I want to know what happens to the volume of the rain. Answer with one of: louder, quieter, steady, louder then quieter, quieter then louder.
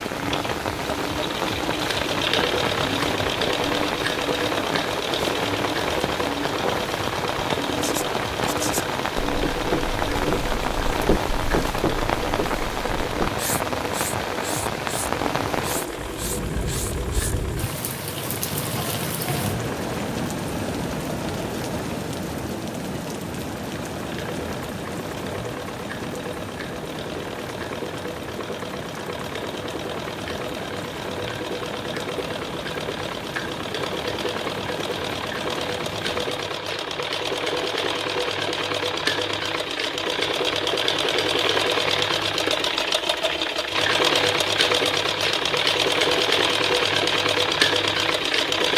quieter.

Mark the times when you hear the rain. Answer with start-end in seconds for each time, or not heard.
0.0-36.6.